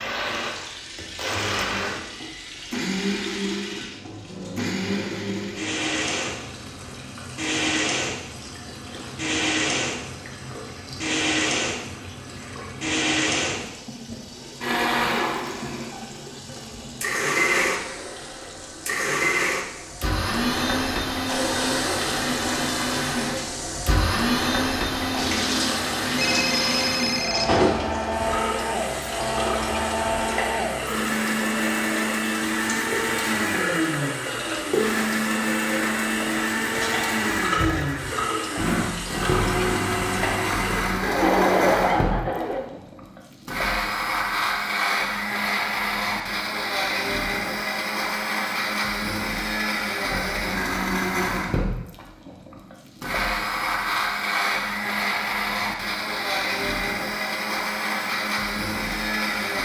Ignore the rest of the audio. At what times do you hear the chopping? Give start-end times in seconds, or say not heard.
not heard.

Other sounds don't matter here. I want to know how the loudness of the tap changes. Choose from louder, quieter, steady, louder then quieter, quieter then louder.
louder.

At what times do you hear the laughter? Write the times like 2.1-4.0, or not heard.
41.0-42.7.